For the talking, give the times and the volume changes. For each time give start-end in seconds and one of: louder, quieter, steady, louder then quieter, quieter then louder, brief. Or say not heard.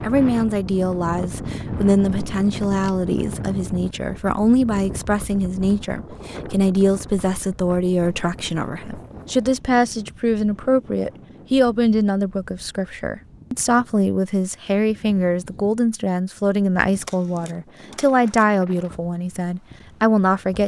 0.0-20.6 steady.